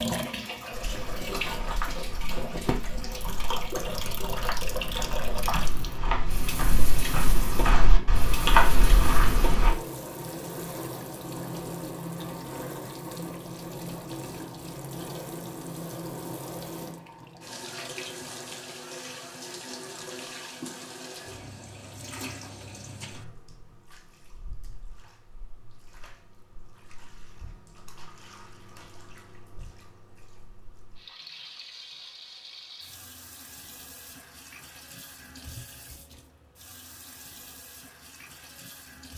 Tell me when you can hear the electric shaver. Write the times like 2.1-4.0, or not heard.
not heard.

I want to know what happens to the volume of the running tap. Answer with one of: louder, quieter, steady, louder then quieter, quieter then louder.
quieter then louder.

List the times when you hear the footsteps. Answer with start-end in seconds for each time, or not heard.
0.7-9.8.